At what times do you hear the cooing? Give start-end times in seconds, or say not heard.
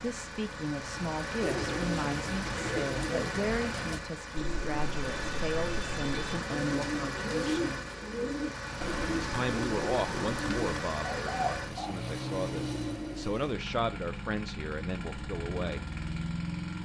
1.4-11.9.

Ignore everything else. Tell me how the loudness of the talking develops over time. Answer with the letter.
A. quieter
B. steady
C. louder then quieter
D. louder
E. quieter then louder
B.